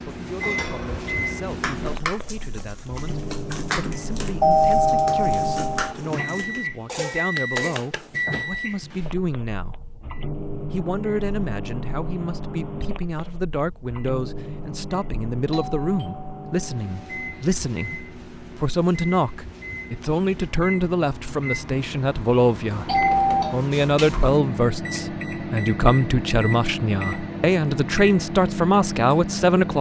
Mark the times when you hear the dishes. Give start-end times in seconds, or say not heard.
0.3-8.1.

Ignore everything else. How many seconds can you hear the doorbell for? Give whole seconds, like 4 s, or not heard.
4 s.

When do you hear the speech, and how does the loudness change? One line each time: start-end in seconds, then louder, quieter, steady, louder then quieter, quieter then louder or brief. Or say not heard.
0.0-29.7 louder.